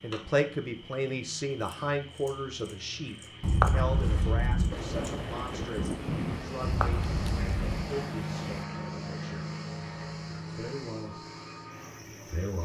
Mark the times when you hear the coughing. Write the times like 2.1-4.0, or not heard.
not heard.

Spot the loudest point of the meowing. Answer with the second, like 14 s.
4 s.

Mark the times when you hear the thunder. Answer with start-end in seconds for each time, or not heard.
4.7-8.7.